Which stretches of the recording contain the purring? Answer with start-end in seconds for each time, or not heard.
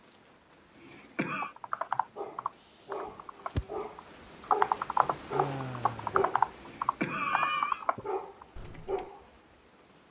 not heard.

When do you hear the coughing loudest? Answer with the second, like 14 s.
7 s.